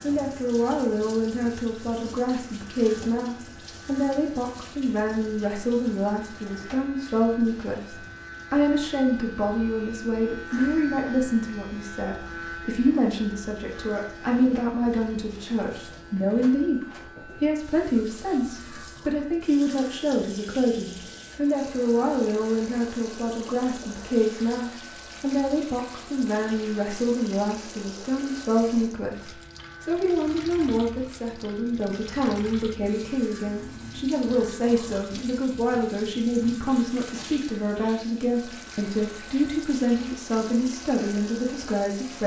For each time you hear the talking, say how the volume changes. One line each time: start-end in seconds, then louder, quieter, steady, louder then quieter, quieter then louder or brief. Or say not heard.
0.0-42.2 steady.